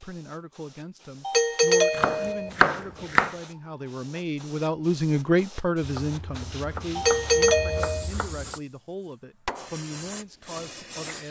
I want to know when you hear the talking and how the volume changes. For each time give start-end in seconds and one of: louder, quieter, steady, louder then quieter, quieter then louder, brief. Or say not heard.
0.0-11.2 louder then quieter.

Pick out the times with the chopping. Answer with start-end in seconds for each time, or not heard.
1.9-3.4, 5.8-8.6.